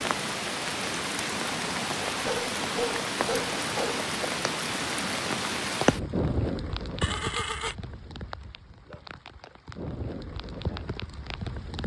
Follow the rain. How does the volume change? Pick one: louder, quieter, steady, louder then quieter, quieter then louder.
quieter.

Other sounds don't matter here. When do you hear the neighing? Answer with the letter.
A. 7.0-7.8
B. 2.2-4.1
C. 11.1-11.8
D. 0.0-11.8
A.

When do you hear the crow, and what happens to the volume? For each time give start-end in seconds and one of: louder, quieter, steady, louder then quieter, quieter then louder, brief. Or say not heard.
not heard.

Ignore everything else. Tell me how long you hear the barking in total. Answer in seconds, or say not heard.
2 s.